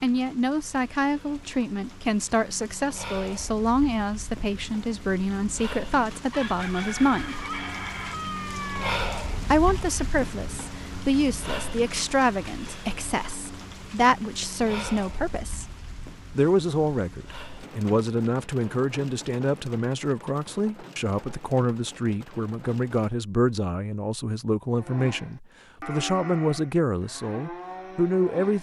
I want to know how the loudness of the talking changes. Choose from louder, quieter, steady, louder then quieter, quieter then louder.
steady.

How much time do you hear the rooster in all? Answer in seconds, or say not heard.
3 s.